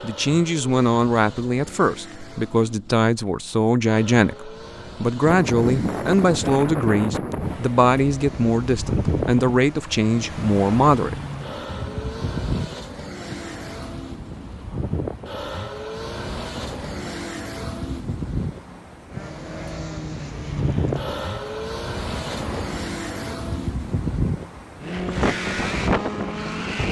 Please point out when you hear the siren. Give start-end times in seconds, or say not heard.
not heard.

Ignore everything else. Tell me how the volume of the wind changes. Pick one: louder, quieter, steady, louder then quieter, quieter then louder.
quieter then louder.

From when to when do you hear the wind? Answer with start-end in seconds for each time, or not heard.
5.2-26.8.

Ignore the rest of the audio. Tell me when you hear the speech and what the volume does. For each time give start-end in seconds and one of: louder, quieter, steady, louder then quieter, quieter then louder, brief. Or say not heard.
0.0-11.2 steady.